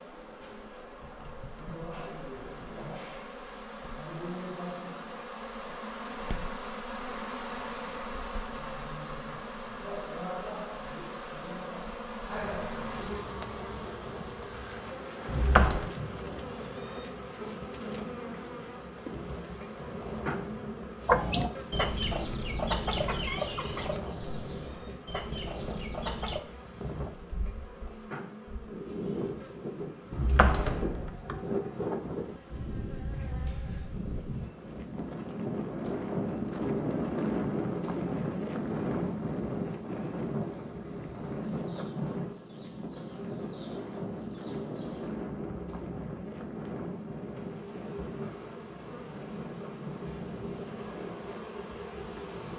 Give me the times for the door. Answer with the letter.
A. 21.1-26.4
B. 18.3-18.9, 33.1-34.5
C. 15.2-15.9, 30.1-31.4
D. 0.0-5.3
C.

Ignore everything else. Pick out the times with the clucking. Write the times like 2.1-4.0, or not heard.
21.1-26.4.